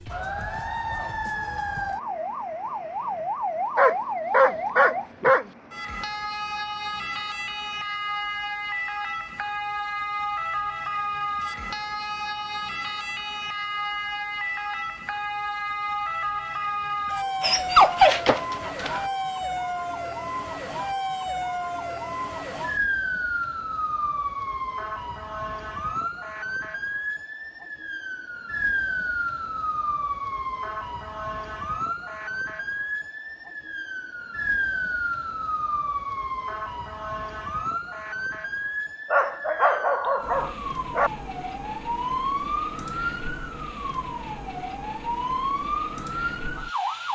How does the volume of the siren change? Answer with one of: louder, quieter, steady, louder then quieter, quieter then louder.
steady.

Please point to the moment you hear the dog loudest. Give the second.
18 s.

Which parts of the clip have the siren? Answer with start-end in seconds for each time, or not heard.
0.0-47.1.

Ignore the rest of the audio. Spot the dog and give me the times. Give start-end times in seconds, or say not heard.
3.8-5.5, 17.4-19.1, 39.1-41.1.